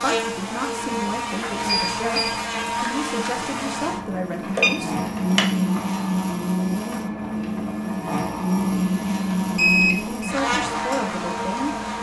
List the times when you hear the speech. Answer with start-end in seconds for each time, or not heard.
0.0-5.0, 10.2-11.8.